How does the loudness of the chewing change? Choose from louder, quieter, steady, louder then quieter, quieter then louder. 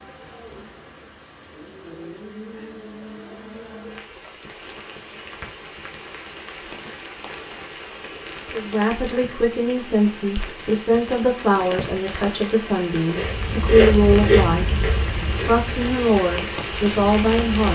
quieter.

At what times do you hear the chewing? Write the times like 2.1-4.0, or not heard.
13.1-17.7.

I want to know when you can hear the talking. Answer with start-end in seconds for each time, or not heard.
8.5-17.7.